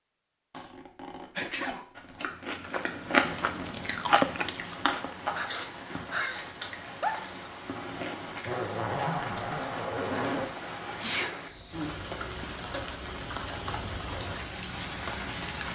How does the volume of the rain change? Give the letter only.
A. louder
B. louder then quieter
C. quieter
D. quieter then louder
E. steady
A.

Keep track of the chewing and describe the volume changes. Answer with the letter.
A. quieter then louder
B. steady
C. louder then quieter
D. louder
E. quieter
E.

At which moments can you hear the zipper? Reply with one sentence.
You can hear the zipper from 0.5 to 2.2 s and from 8.4 to 10.4 s.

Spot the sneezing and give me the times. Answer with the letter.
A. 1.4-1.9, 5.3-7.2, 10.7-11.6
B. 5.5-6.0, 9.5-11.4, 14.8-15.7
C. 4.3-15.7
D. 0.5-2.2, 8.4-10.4
A.